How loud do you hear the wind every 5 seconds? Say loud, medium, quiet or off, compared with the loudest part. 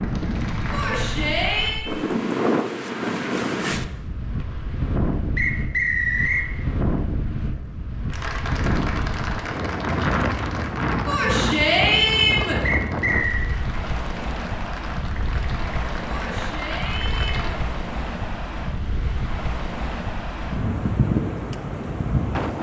loud, loud, loud, medium, loud.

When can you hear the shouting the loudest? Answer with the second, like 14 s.
12 s.